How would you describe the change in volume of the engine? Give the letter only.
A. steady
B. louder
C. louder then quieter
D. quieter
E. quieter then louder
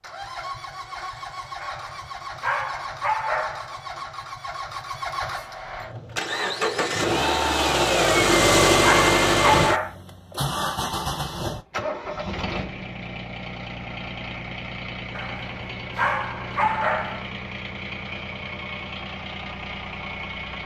C.